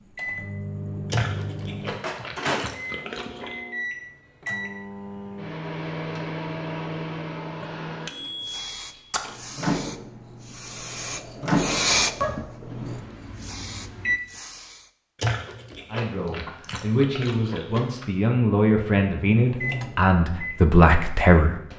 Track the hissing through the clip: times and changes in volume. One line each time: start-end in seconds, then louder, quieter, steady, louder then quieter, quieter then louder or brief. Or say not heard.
8.2-14.9 louder then quieter.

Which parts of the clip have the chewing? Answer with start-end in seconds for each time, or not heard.
1.1-3.5, 15.2-18.1.